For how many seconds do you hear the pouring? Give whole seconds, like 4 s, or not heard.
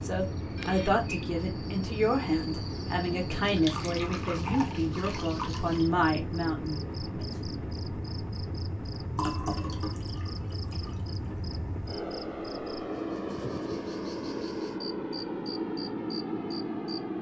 4 s.